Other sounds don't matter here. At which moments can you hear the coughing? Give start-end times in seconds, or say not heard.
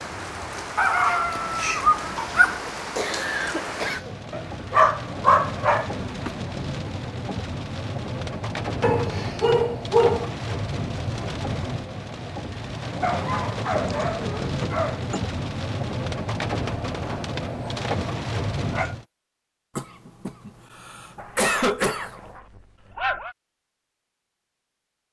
2.1-4.2, 13.8-15.2, 19.8-22.2.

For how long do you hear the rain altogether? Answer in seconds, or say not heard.
19 s.